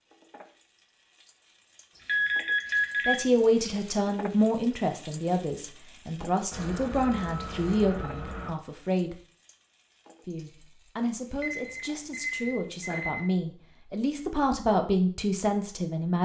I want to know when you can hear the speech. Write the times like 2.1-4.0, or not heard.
3.0-9.2, 10.2-16.2.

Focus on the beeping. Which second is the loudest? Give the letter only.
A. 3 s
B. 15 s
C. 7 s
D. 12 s
A.